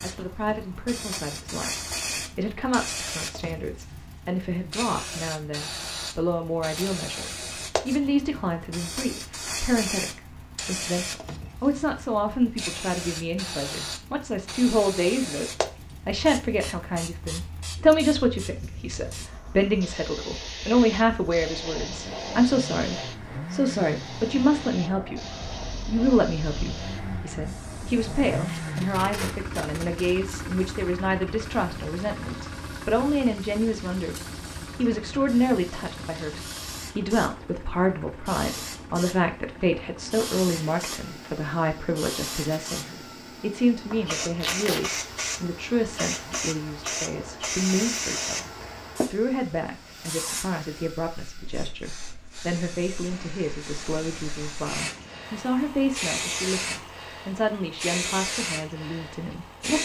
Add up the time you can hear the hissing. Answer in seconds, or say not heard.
60 s.